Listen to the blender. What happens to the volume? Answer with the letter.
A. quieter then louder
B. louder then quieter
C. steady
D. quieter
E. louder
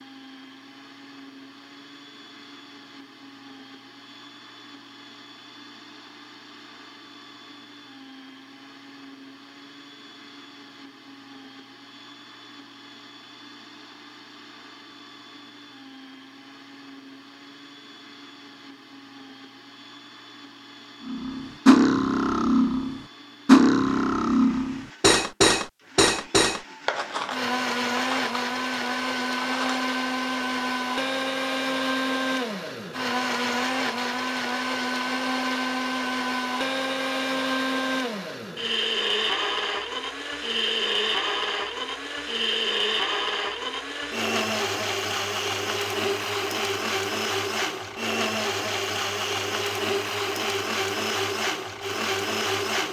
E.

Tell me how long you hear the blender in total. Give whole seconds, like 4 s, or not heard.
53 s.